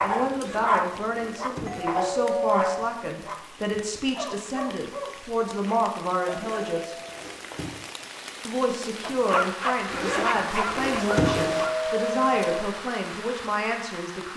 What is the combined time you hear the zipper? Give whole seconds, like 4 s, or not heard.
5 s.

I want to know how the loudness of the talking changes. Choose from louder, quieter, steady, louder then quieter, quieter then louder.
steady.